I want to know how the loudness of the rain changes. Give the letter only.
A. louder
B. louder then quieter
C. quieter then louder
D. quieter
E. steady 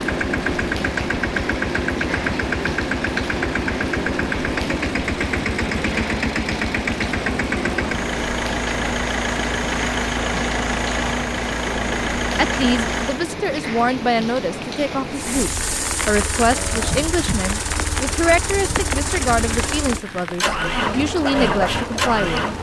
E.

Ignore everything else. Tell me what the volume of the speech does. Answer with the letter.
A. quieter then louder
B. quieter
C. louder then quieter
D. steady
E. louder
D.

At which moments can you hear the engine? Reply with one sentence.
The engine can be heard from 0.0 to 13.2 s and from 15.2 to 22.5 s.